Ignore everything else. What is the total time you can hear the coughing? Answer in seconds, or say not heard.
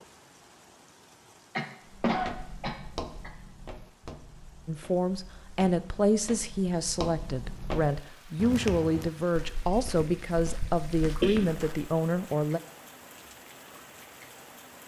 3 s.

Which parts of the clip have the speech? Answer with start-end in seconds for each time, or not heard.
4.7-12.6.